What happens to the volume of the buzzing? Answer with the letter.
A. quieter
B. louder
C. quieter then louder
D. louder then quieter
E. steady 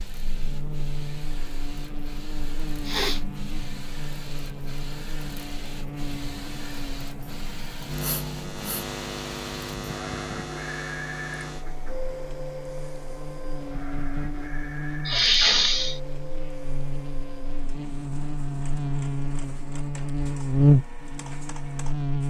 B.